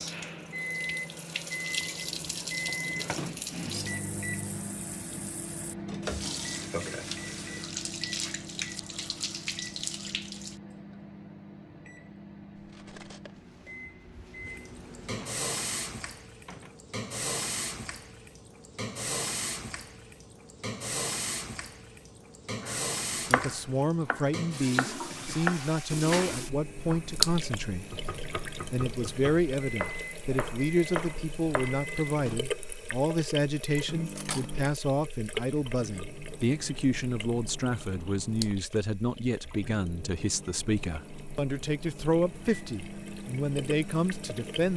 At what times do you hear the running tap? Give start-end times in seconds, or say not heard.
0.0-10.6, 14.4-44.7.